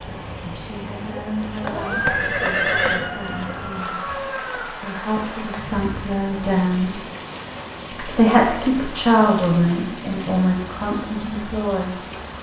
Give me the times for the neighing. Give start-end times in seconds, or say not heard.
1.6-3.1.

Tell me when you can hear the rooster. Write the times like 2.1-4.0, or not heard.
2.9-4.7.